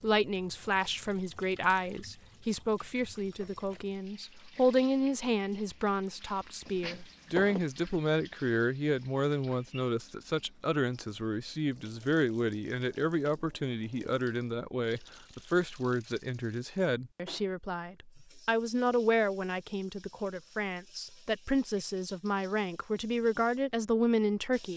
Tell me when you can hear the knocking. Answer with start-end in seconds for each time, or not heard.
6.7-7.6.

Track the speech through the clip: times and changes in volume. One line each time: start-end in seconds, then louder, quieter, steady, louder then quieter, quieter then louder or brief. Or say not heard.
0.0-24.7 steady.